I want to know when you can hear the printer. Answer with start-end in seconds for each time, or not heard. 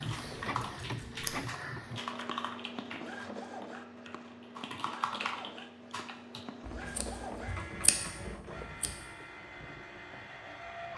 0.0-10.9.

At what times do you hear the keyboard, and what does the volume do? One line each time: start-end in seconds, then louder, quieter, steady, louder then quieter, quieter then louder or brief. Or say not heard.
0.0-6.5 quieter then louder.